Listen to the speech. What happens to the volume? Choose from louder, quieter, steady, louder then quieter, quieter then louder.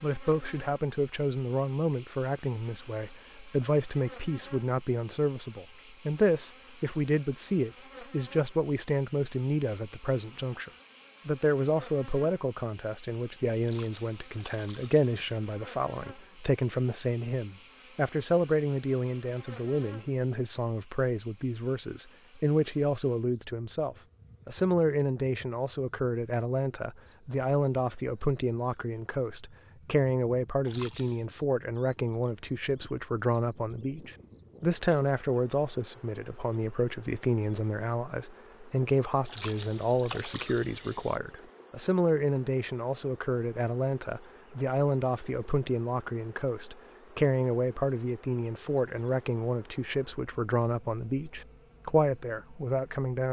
steady.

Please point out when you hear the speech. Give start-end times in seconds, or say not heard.
0.0-53.2.